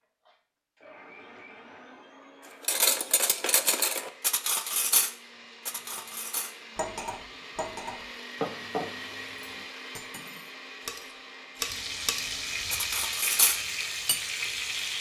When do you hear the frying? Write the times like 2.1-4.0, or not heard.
11.6-14.9.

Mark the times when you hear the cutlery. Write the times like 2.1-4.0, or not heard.
2.6-14.2.